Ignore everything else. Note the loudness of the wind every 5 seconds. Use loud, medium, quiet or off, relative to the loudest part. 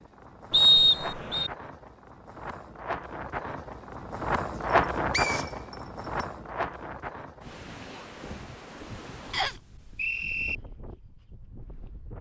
loud, loud, quiet.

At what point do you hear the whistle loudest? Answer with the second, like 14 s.
1 s.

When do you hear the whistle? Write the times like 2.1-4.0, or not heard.
0.5-1.5, 5.1-6.2, 9.3-10.6.